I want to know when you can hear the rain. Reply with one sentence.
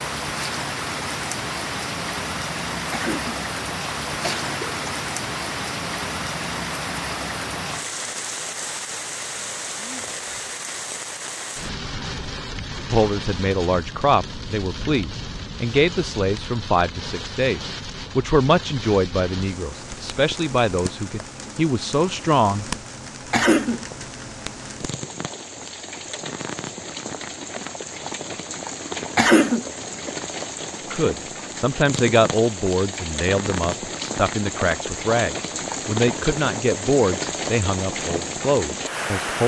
You can hear the rain from 0.0 to 39.4 s.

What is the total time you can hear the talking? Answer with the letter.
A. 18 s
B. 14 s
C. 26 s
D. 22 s
A.